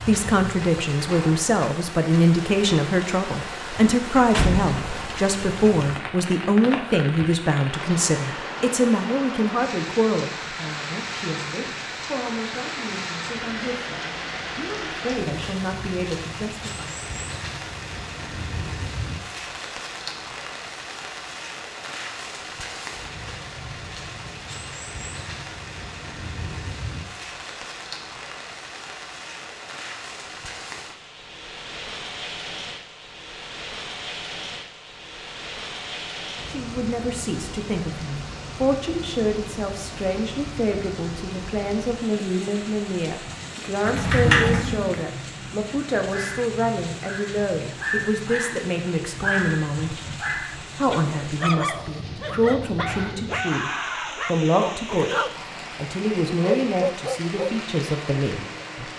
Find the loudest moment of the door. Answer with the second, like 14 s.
44 s.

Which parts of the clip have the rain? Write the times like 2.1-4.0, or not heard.
0.0-58.9.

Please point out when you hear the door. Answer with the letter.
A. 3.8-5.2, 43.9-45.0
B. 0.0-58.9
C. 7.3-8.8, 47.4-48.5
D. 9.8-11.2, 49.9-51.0
A.